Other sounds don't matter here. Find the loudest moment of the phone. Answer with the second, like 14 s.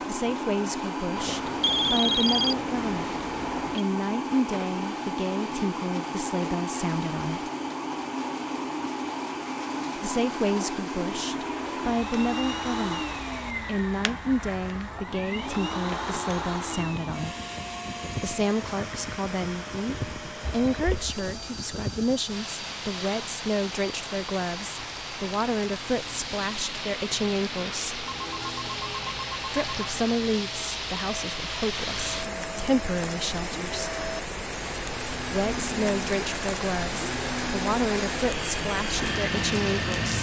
2 s.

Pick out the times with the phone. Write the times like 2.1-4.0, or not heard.
1.1-3.8, 20.6-21.1, 28.0-30.0.